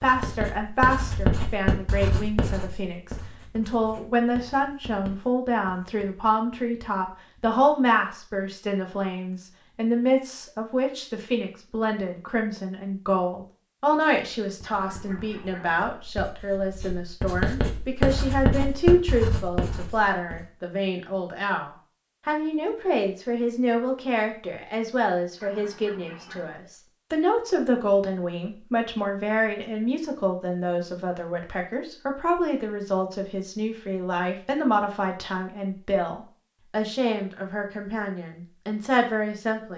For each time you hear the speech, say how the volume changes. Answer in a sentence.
The speech can be heard from 0.0 to 39.7 s, at a steady volume.